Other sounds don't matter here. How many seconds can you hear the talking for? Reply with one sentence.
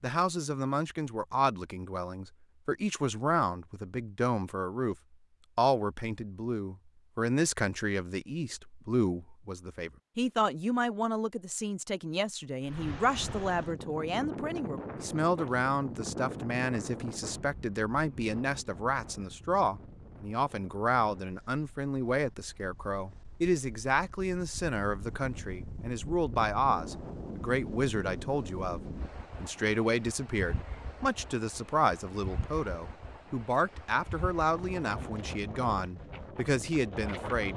The talking can be heard for 37 seconds in total.